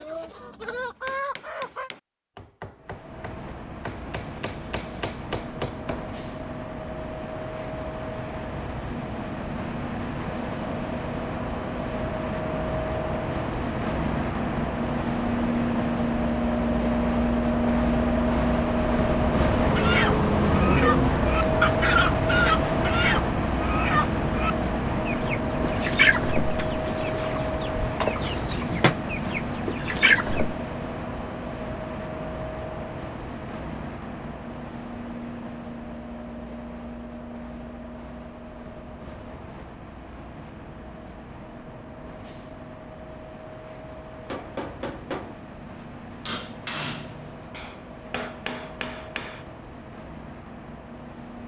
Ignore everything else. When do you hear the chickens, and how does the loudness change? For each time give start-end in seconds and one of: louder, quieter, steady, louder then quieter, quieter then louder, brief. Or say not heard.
0.0-1.9 brief
19.8-30.6 quieter then louder.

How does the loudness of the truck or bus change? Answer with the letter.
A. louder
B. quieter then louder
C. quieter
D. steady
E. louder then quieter
E.